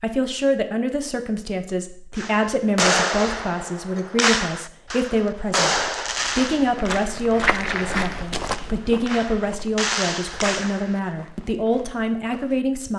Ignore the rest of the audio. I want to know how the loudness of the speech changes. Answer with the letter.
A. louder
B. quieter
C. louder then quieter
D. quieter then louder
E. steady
E.